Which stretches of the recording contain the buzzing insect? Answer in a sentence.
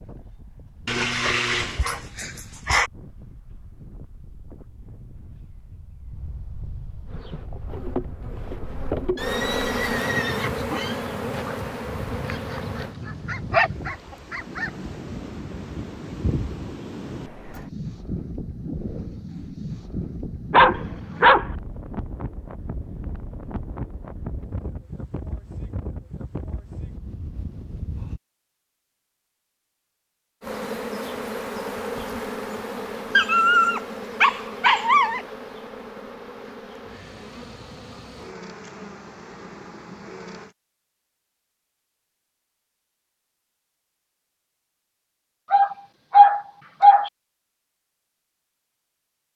You can hear the buzzing insect from 7.0 to 12.9 s and from 30.4 to 40.5 s.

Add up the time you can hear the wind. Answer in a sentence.
The wind can be heard for 28 seconds in total.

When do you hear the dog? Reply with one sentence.
You can hear the dog from 0.8 to 2.9 s, from 12.3 to 14.7 s, from 20.5 to 21.4 s, from 33.1 to 35.2 s and from 45.5 to 47.1 s.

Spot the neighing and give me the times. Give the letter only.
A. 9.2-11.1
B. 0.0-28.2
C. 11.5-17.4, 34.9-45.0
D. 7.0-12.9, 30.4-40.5
A.